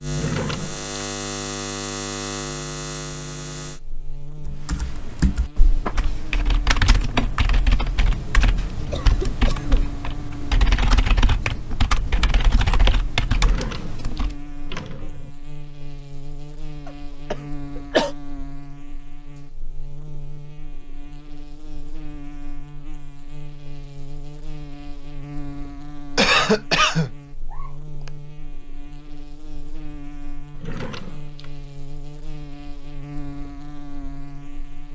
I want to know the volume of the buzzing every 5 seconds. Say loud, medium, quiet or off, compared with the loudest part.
loud, medium, medium, medium, medium, medium, medium.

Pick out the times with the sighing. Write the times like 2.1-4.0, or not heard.
not heard.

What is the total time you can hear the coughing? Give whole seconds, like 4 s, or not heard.
5 s.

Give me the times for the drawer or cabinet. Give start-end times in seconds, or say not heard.
0.1-0.8, 13.3-15.3, 30.6-31.5.